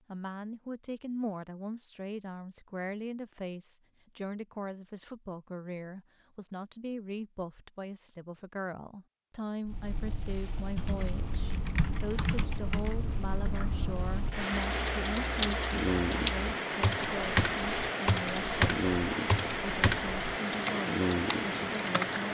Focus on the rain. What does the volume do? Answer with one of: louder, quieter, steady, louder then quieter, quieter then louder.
louder.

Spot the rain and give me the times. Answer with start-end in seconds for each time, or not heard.
9.7-22.3.